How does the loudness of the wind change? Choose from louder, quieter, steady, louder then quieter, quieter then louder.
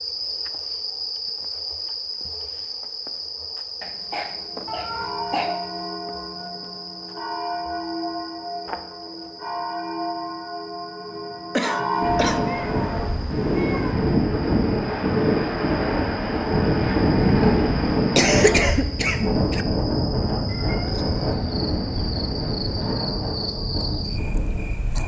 quieter.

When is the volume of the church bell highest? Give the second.
12 s.